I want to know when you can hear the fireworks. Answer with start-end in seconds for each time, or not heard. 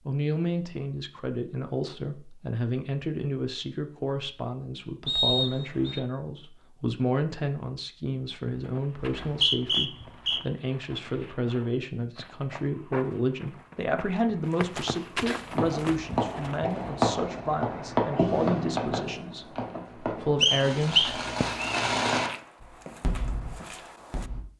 15.5-24.4.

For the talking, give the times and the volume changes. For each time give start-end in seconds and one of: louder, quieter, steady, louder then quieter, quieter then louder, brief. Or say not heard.
0.1-21.1 steady.